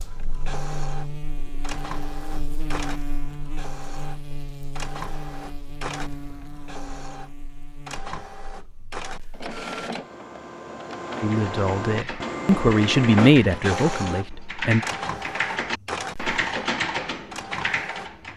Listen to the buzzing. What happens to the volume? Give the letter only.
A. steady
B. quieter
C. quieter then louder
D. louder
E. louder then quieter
B.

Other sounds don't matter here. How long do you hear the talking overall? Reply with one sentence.
The talking can be heard for 4 seconds in total.